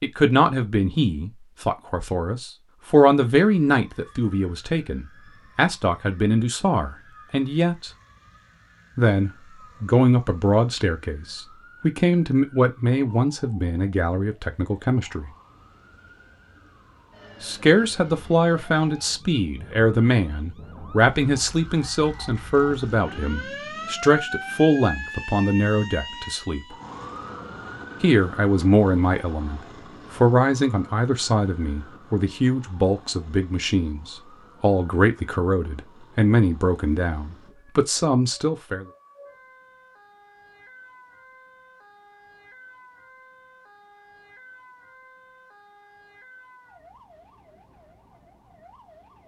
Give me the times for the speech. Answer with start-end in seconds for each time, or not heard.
0.0-7.9, 8.9-15.3, 17.4-26.8, 28.0-38.9.